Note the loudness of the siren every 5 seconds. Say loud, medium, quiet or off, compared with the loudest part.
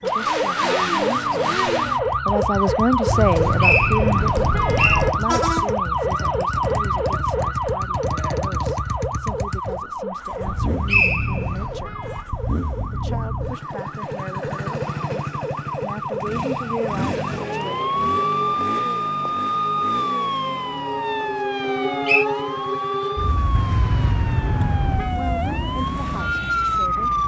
loud, loud, medium, loud, loud, loud.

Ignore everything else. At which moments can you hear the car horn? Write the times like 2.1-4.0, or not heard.
3.1-5.1, 10.4-12.3, 23.5-25.1.